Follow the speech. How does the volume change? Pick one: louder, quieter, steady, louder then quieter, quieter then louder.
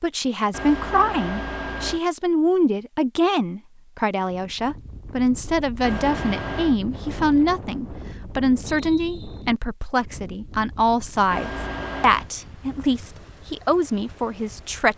steady.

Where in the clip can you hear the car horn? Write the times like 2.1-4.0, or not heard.
0.5-2.0, 5.8-6.8, 11.3-12.3.